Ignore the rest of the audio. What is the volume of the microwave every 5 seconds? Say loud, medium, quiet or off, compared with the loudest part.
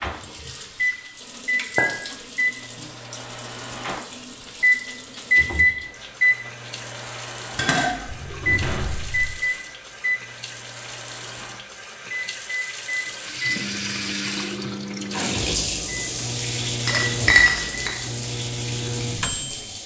loud, loud, medium, medium.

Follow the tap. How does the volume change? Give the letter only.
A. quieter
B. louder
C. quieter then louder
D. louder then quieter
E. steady
B.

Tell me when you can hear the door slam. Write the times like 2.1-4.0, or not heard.
8.1-9.3.